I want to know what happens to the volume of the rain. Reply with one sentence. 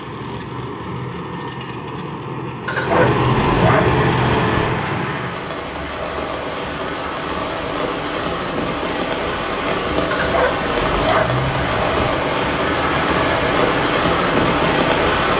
The volume of the rain goes up.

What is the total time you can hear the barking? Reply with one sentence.
The barking can be heard for 4 seconds in total.